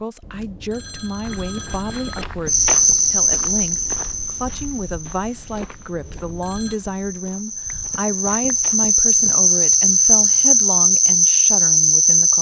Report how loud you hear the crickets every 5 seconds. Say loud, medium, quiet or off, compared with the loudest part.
medium, medium, loud.